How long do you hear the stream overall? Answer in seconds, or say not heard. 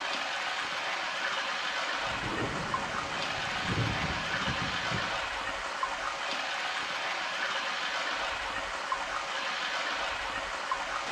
11 s.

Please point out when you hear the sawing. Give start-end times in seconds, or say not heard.
not heard.